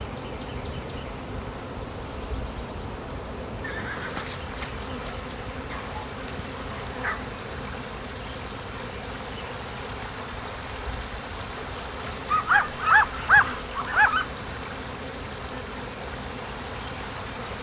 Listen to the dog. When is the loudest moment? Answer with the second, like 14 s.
13 s.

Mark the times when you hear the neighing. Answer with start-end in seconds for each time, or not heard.
3.6-4.2.